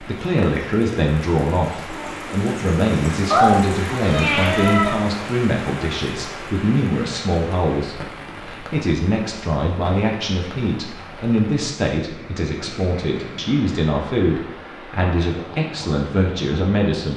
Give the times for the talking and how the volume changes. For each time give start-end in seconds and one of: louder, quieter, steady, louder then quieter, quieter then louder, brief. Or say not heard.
0.0-17.1 steady.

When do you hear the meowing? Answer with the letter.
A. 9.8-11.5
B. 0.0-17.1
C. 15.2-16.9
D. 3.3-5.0
D.